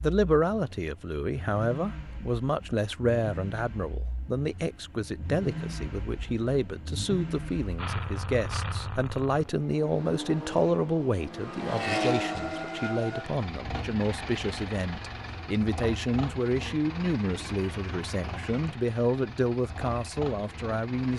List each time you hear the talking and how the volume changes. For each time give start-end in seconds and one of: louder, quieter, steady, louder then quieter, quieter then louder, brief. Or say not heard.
0.0-21.1 steady.